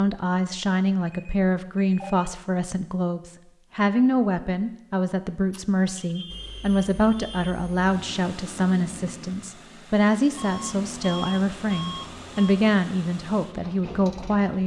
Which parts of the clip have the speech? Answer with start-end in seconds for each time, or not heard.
0.0-14.6.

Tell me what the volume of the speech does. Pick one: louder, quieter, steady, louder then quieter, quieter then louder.
steady.